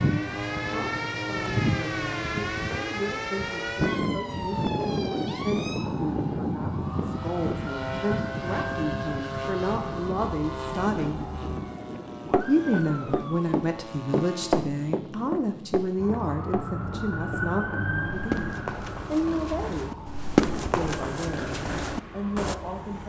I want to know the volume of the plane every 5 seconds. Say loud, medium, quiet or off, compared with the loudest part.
loud, loud, medium, quiet, quiet.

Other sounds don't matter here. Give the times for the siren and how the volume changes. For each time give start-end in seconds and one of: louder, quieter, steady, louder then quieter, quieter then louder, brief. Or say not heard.
0.0-13.6 quieter
15.9-23.0 quieter.